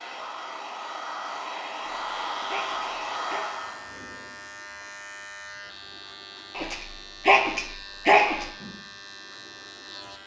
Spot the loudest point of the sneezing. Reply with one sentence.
The loudest moment of the sneezing is at 8 seconds.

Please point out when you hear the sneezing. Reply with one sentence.
You can hear the sneezing from 1.8 to 3.5 s and from 6.5 to 8.4 s.